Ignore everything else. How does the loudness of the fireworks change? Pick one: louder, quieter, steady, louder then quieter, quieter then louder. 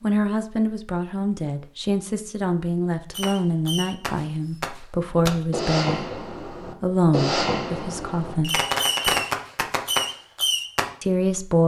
louder.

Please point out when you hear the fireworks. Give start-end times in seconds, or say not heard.
3.1-10.8.